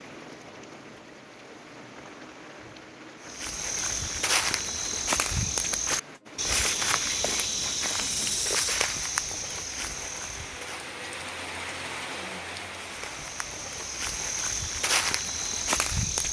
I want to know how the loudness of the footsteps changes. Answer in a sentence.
The volume of the footsteps goes down, then up.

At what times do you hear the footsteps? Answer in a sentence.
The footsteps can be heard from 3.2 to 10.9 s and from 12.7 to 16.2 s.